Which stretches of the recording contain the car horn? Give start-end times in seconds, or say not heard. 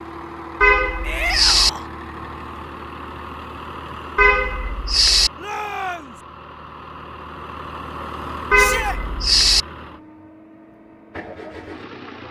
0.6-1.7, 4.2-5.3, 8.5-9.7.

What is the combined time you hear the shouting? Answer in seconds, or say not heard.
2 s.